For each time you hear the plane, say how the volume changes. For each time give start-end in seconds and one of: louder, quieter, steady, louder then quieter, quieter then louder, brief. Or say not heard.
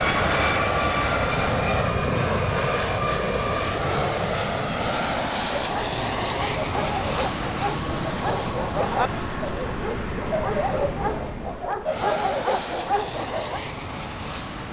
0.0-14.6 quieter.